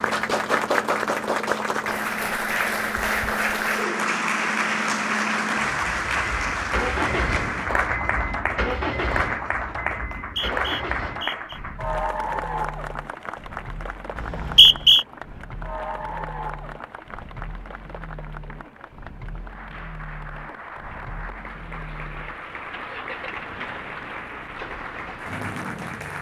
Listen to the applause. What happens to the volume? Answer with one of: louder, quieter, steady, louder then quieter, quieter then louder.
quieter.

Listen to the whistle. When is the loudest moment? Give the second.
15 s.